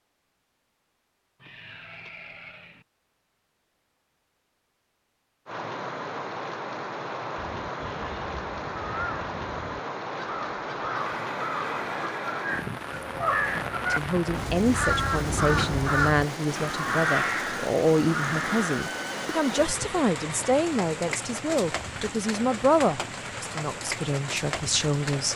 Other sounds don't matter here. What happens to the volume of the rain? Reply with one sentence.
The volume of the rain stays about the same.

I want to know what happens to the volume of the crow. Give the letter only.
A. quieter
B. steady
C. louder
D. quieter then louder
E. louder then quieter
C.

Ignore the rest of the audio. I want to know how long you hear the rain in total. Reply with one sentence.
The rain can be heard for 20 seconds in total.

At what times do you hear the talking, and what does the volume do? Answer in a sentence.
The talking can be heard from 13.9 to 25.3 s, at a steady volume.